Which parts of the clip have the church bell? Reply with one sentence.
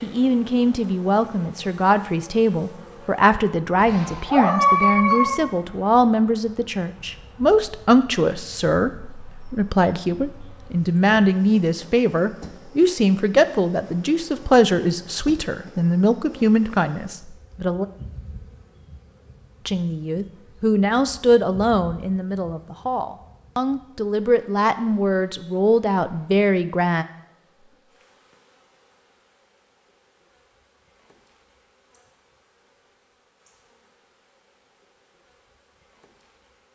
You can't hear the church bell here.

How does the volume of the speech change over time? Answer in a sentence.
The volume of the speech stays about the same.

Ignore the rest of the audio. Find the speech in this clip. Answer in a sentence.
The speech can be heard from 0.0 to 17.9 s and from 19.6 to 27.1 s.